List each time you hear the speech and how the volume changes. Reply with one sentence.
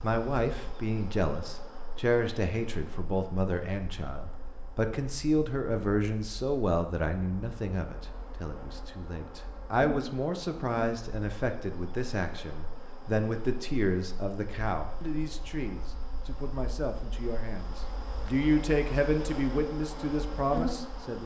The speech can be heard from 0.0 to 21.2 s, at a steady volume.